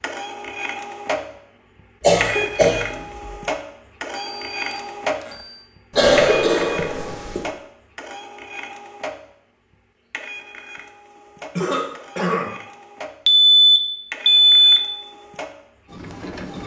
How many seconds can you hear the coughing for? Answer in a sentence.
You can hear the coughing for 3 seconds altogether.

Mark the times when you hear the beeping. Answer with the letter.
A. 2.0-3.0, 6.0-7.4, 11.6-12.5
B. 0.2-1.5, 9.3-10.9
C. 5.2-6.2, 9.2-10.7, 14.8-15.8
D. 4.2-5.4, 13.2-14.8
D.